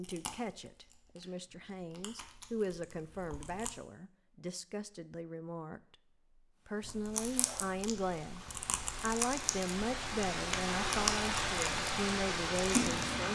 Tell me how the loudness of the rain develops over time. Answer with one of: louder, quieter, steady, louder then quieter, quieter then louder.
louder.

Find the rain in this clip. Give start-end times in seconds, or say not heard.
6.6-13.2.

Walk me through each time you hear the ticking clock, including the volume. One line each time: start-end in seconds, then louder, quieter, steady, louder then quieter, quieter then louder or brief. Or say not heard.
not heard.